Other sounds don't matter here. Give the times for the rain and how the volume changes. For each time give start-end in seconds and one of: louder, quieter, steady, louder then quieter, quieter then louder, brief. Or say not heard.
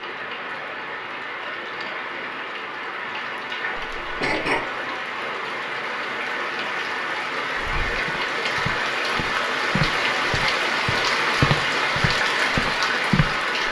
0.0-13.6 louder.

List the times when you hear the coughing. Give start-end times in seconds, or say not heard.
3.8-4.6.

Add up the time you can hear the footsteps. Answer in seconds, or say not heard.
6 s.